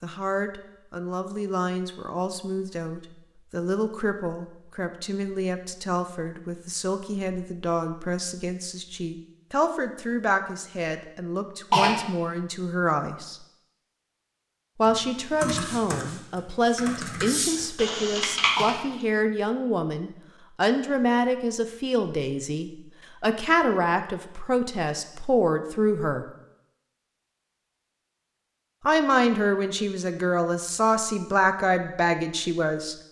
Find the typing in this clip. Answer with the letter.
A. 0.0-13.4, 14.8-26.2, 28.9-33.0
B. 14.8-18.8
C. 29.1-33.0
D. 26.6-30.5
B.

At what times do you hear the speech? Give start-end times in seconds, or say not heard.
0.0-13.4, 14.8-26.2, 28.9-33.0.